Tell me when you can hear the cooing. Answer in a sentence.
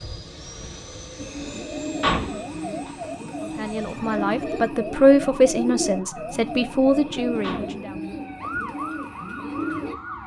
The cooing can be heard from 1.1 to 9.9 s.